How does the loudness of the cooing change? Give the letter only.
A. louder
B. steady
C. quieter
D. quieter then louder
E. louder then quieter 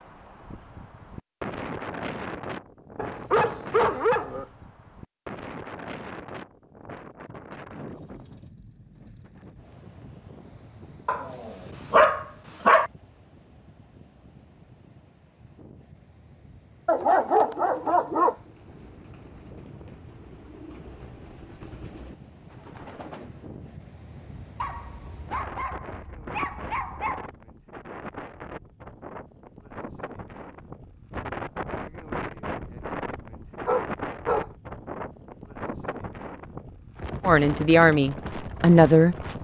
A.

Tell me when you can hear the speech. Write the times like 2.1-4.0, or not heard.
37.2-39.1.